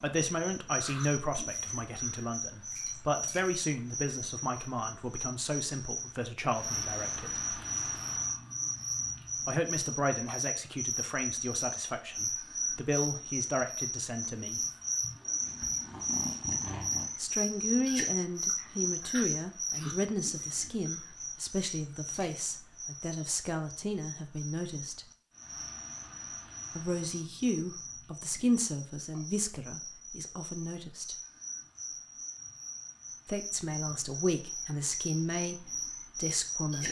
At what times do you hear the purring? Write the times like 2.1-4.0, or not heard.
15.4-17.1.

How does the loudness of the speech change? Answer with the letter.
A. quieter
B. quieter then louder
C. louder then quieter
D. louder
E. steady
E.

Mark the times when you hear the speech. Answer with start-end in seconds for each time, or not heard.
0.0-7.4, 9.4-14.6, 17.1-25.1, 26.8-31.1, 33.2-36.8.